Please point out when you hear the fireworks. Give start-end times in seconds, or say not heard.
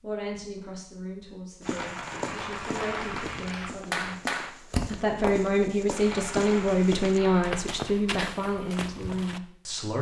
1.6-7.6.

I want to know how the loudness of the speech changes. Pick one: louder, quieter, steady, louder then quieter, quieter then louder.
louder then quieter.